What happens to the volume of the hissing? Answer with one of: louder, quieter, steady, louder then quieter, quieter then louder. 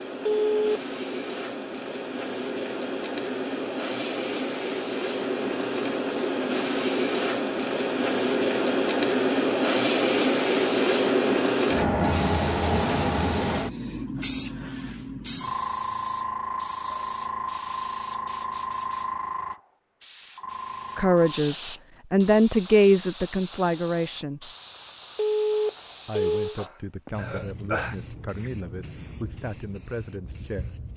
louder then quieter.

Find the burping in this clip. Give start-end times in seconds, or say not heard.
26.6-27.9.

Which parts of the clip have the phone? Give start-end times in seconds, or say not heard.
0.2-0.8, 25.1-26.6.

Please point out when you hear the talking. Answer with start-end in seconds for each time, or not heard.
20.9-24.5, 26.1-30.9.